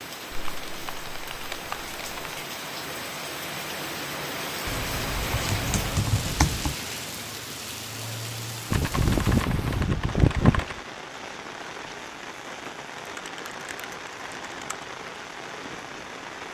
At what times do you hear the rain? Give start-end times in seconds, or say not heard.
0.0-16.5.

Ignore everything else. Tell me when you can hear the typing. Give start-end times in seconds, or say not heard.
0.3-2.4, 4.7-6.8, 8.7-10.8, 12.9-14.8.